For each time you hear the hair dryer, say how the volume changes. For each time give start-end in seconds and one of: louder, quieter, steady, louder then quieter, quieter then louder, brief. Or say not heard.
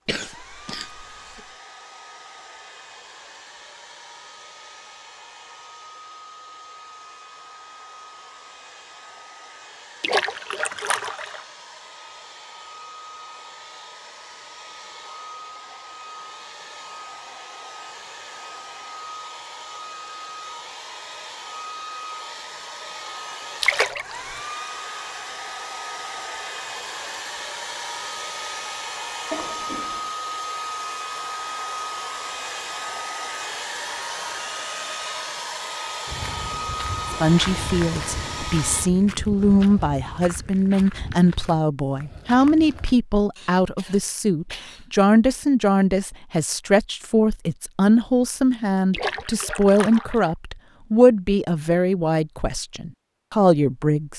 0.1-38.9 louder.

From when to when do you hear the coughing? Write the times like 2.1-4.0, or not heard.
0.1-1.4, 29.3-30.1, 43.4-44.9.